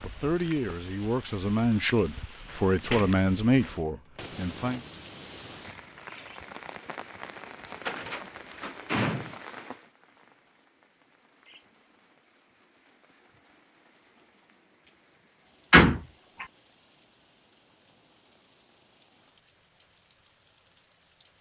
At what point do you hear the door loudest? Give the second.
16 s.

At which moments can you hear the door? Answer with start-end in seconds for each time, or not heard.
2.5-3.8, 7.8-9.4, 15.7-16.4.